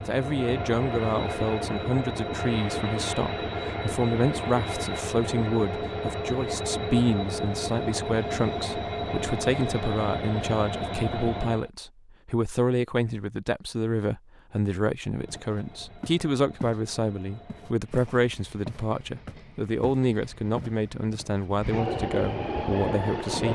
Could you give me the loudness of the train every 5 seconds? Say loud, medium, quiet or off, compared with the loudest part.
loud, loud, loud, quiet, loud.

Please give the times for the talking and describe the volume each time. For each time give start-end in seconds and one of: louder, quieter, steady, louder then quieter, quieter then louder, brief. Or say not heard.
0.1-23.5 steady.